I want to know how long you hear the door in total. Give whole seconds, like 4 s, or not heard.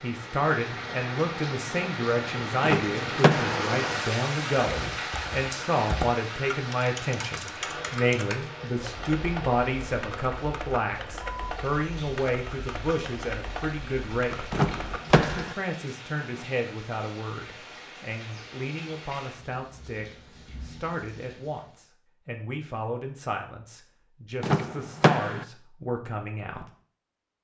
3 s.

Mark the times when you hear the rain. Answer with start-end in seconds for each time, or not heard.
0.0-21.8.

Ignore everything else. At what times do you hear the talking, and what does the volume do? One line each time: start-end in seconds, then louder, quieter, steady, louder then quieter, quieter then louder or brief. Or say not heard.
0.0-14.5 steady
15.2-26.6 steady.